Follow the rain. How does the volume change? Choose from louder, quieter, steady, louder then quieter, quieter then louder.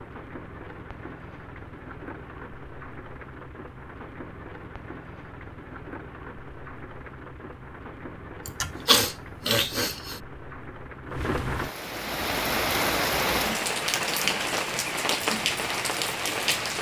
louder.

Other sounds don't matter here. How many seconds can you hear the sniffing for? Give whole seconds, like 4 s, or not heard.
2 s.